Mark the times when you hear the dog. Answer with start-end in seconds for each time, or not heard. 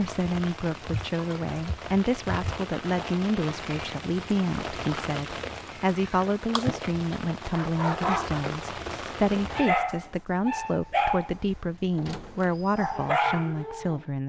7.5-14.0.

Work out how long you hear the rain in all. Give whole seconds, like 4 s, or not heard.
10 s.